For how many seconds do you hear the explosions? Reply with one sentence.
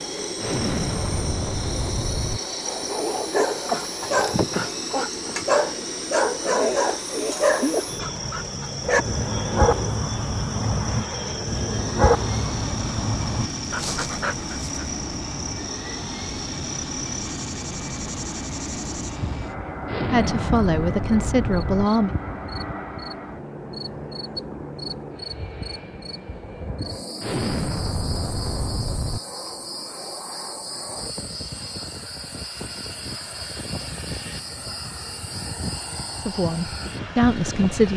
You can hear the explosions for 6 seconds altogether.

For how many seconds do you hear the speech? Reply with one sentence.
The speech can be heard for 4 seconds in total.